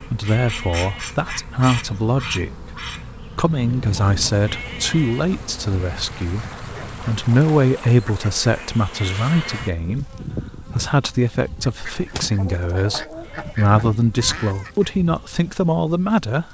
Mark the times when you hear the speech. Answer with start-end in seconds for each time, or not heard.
0.1-16.4.